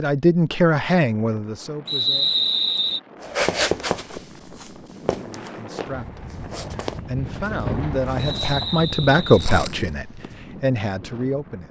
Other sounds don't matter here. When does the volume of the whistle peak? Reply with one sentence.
The loudest moment of the whistle is at 2 seconds.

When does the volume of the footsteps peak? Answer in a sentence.
The loudest moment of the footsteps is at 4 seconds.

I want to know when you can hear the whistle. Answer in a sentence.
The whistle can be heard from 1.9 to 3.0 s and from 8.2 to 9.5 s.